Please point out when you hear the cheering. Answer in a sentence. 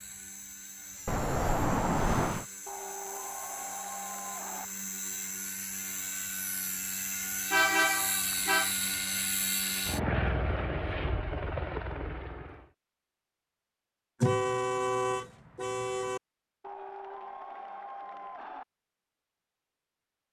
The cheering can be heard from 2.6 to 4.7 s and from 16.6 to 18.6 s.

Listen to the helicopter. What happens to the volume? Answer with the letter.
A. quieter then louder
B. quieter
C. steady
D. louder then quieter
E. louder
E.